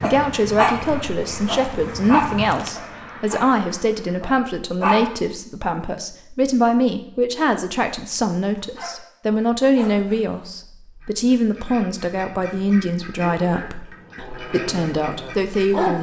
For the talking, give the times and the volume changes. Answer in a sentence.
The talking can be heard from 0.0 to 15.9 s, at a steady volume.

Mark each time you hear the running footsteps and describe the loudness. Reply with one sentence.
The running footsteps can't be heard in this clip.